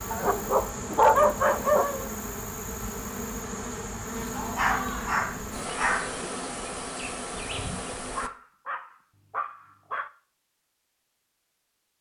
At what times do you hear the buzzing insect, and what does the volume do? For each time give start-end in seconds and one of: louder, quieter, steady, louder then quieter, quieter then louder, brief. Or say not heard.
0.0-8.3 steady.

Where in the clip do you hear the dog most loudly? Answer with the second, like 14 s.
1 s.